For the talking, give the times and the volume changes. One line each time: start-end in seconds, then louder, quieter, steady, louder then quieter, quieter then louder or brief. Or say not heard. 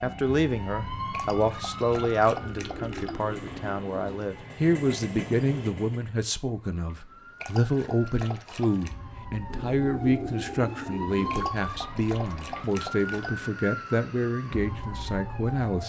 0.0-15.8 steady.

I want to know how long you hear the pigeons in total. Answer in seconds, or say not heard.
4 s.